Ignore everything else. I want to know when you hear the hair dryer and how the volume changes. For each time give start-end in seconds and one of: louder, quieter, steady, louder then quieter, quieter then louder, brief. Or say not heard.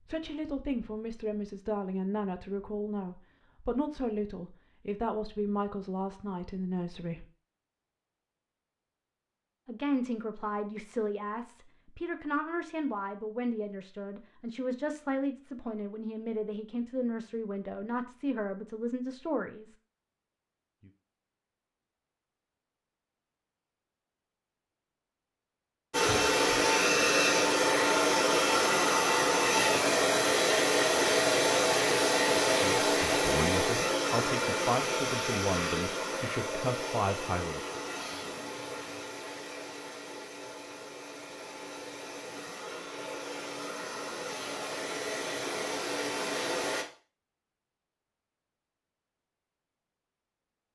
25.9-46.9 quieter then louder.